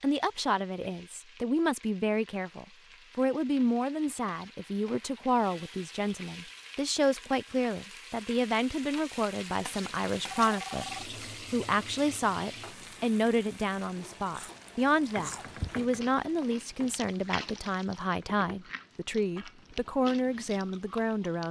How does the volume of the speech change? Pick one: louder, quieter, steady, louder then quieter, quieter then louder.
steady.